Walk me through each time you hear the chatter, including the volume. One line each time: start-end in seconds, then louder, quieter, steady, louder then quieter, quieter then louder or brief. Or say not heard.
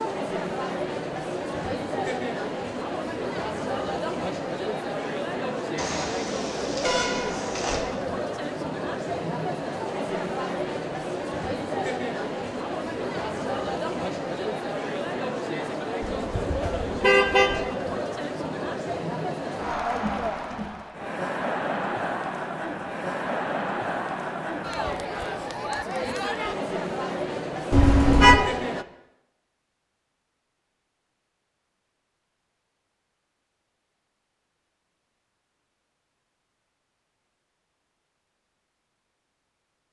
0.0-28.9 steady.